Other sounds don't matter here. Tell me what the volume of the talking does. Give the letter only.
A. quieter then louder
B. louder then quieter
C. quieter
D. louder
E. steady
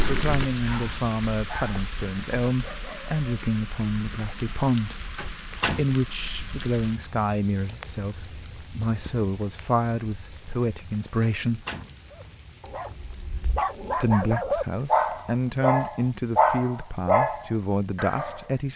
E.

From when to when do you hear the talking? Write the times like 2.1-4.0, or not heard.
0.1-11.7, 13.9-18.7.